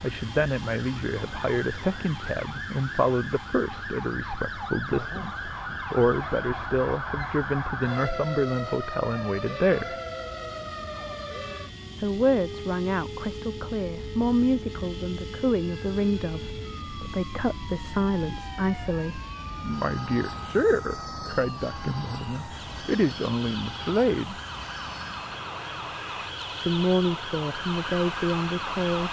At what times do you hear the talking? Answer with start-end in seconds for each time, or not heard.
0.0-9.9, 12.0-24.4, 26.6-29.0.